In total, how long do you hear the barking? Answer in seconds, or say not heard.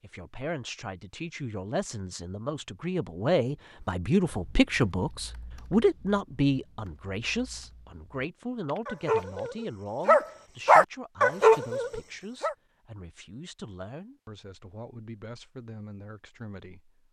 4 s.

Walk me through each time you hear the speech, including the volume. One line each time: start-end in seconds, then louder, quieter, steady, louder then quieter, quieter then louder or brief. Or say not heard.
0.0-16.9 louder then quieter.